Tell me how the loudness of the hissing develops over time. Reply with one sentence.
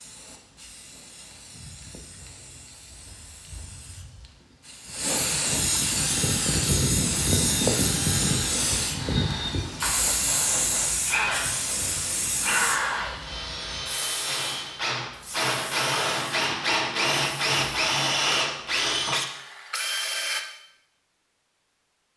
The loudness of the hissing goes up, then down.